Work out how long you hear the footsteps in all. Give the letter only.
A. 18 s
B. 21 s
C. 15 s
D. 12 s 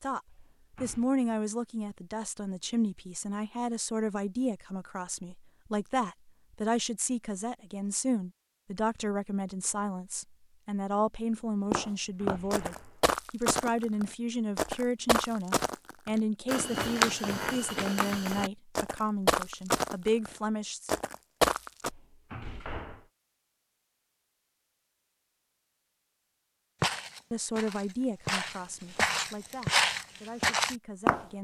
C.